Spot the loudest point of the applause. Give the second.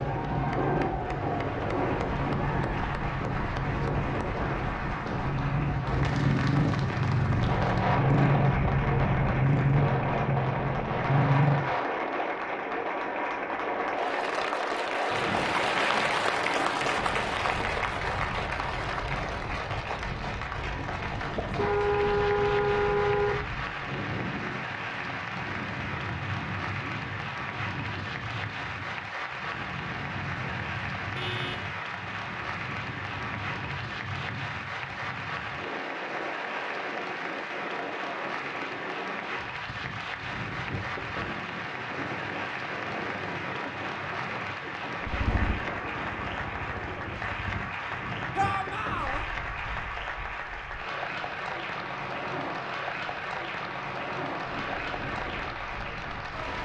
16 s.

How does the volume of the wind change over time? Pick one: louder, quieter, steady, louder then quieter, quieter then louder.
quieter.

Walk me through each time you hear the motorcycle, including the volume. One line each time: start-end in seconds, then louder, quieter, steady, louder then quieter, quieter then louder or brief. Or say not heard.
0.0-11.8 louder
45.0-47.8 brief.